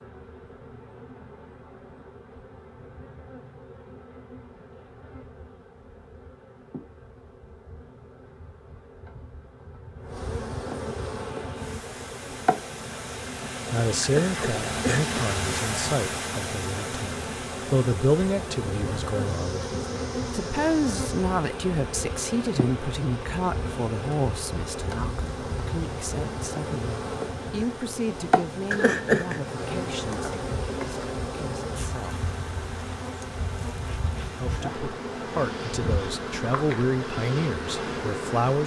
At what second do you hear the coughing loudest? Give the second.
29 s.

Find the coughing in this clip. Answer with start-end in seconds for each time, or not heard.
14.0-15.3, 28.7-29.4.